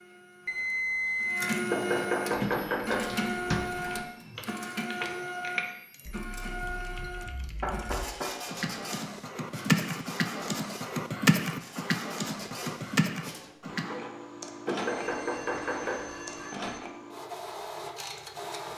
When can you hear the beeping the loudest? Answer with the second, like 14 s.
1 s.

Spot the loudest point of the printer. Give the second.
2 s.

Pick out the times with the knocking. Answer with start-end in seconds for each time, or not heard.
1.7-3.1, 7.2-8.3, 14.7-16.1.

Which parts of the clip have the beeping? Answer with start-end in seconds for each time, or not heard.
0.5-1.6, 14.8-16.8.